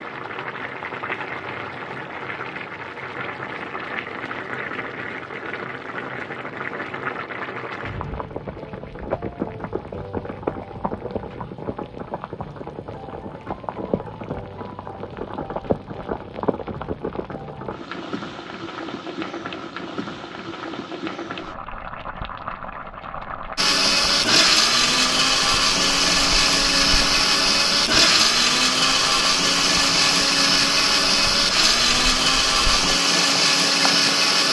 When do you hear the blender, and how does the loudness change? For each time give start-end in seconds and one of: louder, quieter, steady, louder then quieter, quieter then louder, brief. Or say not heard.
23.6-34.4 steady.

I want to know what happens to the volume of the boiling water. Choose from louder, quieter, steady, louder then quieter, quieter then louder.
steady.